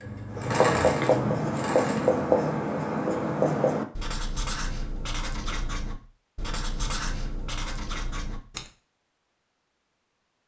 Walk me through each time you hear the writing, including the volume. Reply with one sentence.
You can hear the writing from 0.3 to 8.7 s, getting quieter.